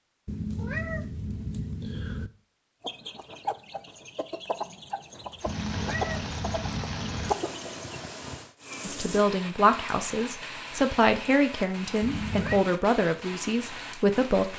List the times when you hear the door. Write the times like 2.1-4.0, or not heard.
not heard.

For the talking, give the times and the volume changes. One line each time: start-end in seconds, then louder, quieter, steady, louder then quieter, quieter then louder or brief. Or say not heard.
8.8-14.5 steady.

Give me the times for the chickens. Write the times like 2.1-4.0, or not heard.
2.8-8.0.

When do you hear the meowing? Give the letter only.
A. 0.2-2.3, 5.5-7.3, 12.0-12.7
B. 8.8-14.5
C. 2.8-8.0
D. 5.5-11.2
A.